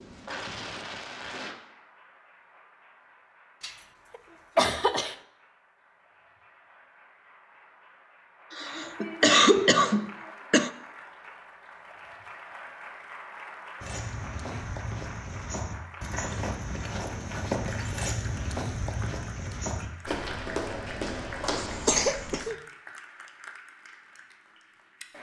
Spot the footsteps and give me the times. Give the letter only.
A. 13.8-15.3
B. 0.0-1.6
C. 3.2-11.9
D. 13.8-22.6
D.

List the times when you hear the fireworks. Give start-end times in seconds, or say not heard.
0.0-1.6.